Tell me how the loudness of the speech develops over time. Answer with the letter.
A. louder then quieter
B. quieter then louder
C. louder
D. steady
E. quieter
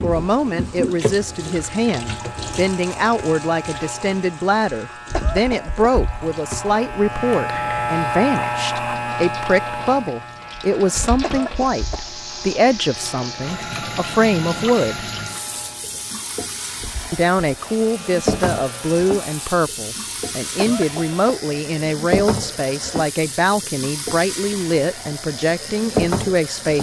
D.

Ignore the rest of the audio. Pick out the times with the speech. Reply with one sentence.
You can hear the speech from 0.0 to 15.1 s and from 17.1 to 26.7 s.